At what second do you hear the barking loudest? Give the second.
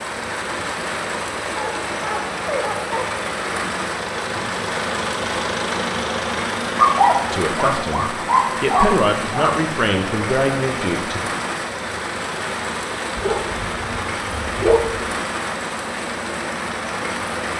7 s.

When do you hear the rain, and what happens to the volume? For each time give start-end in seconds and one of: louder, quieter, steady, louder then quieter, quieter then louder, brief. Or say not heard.
0.0-17.5 steady.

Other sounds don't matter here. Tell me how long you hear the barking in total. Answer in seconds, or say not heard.
6 s.